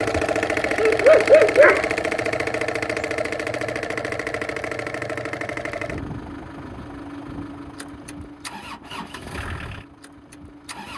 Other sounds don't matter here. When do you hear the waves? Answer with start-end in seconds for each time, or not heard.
not heard.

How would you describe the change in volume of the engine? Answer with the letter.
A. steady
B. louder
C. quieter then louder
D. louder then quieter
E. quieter
E.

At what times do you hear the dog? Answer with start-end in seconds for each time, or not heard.
0.1-1.9.